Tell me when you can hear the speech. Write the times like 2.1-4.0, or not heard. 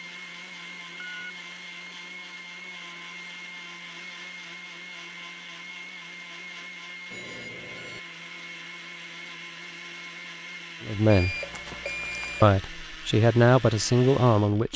10.8-11.3, 12.4-14.7.